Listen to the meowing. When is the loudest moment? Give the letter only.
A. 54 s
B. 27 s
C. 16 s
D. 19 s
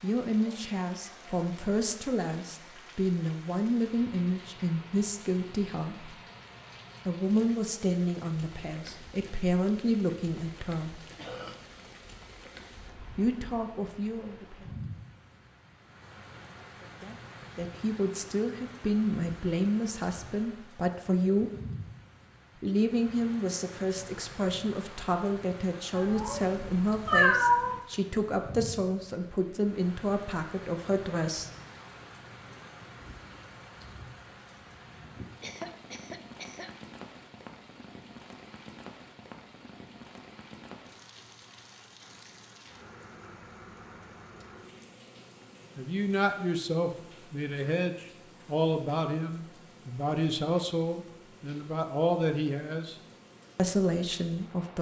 B.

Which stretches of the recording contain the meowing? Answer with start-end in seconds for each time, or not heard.
25.9-27.8.